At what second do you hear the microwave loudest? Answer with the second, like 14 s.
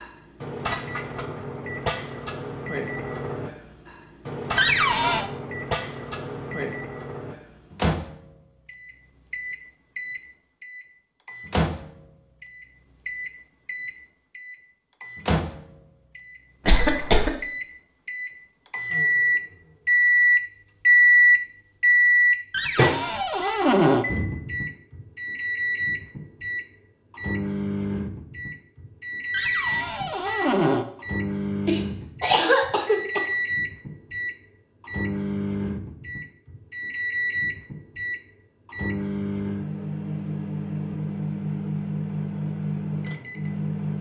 21 s.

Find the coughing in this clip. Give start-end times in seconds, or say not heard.
16.6-17.3, 31.6-33.2.